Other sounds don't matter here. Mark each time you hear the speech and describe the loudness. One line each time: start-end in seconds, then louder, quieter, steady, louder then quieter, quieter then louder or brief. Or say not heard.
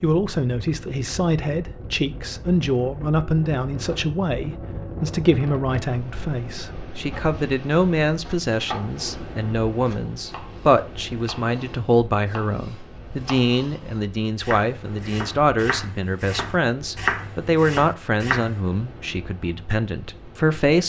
0.0-20.8 steady.